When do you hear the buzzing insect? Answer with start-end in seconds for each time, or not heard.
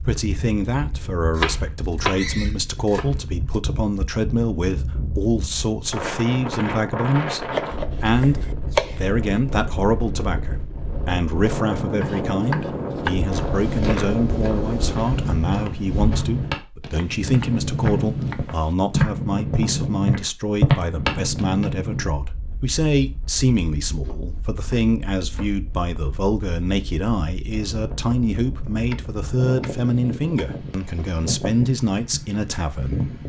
not heard.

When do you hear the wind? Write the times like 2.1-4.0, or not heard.
0.0-33.2.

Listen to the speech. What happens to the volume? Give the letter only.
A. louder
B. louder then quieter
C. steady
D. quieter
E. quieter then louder
C.